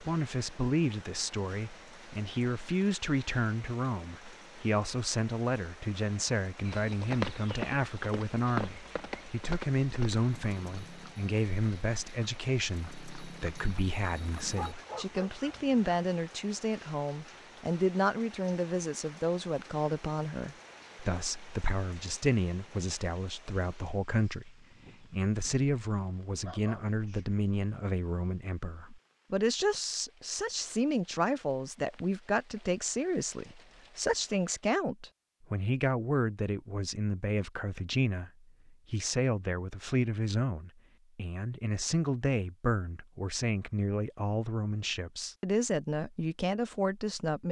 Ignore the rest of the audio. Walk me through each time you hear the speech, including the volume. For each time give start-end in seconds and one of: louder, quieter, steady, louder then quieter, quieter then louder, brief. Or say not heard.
0.0-47.4 steady.